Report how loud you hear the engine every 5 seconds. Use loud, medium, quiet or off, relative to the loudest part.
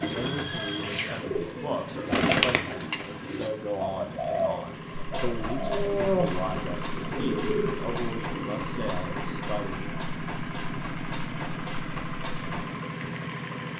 medium, loud, loud.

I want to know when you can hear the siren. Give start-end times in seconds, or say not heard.
not heard.